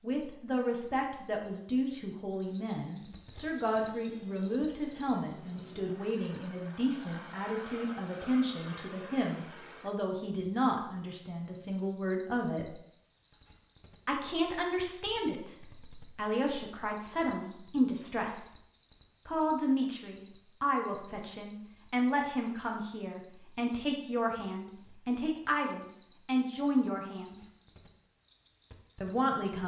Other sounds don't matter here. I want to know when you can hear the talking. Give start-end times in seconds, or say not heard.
0.0-12.8, 14.1-18.5, 19.2-27.4, 29.0-29.6.